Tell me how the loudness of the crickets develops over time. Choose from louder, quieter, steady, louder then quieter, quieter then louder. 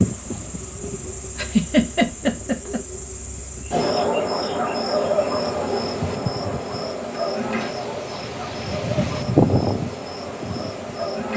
louder then quieter.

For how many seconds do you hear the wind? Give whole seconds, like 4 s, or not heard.
11 s.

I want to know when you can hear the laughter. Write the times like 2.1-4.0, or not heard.
1.4-2.8.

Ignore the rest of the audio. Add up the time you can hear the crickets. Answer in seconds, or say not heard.
11 s.